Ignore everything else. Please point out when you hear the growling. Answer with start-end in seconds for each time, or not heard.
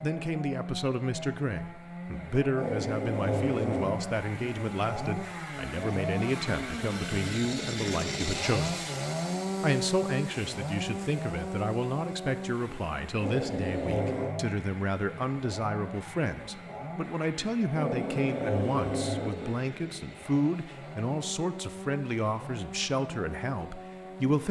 2.5-4.0, 13.2-14.3, 17.8-19.6.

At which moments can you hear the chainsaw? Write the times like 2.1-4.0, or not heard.
0.0-24.4.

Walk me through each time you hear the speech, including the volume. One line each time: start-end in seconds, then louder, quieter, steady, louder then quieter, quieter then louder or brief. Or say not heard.
0.0-8.8 steady
9.6-24.4 steady.